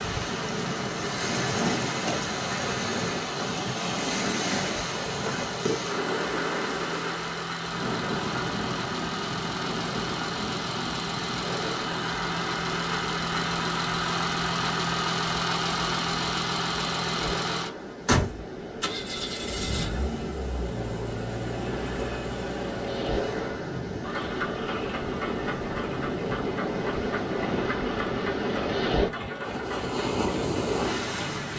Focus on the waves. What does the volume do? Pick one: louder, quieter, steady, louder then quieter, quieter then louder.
quieter then louder.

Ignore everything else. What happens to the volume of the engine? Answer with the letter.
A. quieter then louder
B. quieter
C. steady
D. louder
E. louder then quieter
E.